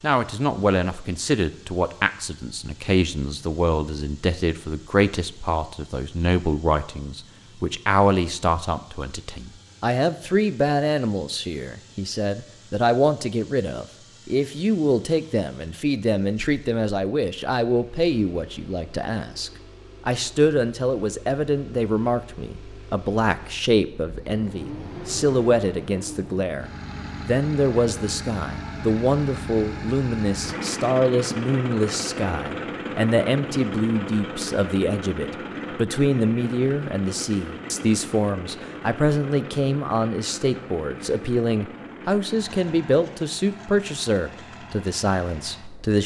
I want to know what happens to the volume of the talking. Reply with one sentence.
The volume of the talking stays about the same.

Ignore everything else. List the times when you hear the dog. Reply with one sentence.
The dog can't be heard in this clip.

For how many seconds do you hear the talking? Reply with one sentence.
You can hear the talking for 46 seconds altogether.